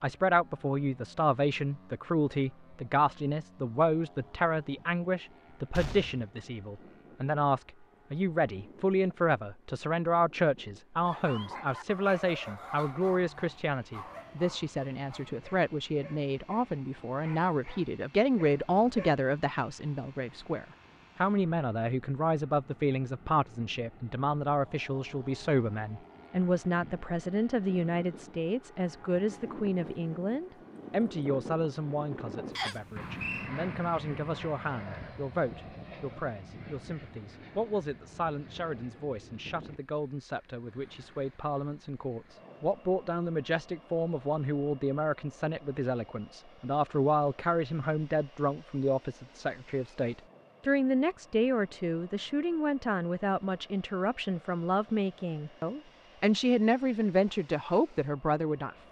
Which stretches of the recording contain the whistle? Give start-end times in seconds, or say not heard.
32.5-33.5.